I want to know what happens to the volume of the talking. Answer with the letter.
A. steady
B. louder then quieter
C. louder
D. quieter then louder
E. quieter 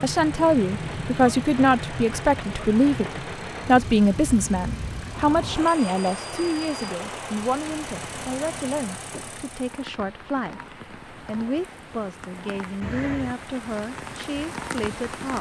E.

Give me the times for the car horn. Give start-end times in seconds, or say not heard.
not heard.